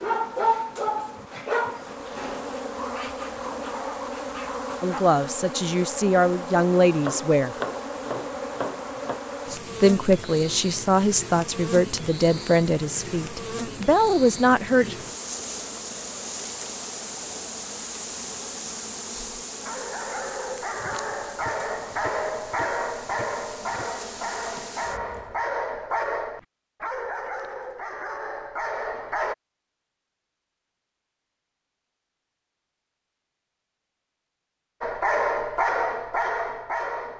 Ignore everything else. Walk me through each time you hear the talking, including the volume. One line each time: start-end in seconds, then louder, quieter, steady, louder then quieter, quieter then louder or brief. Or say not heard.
4.8-7.5 brief
9.8-14.9 quieter then louder.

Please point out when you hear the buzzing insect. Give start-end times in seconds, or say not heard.
0.0-25.5.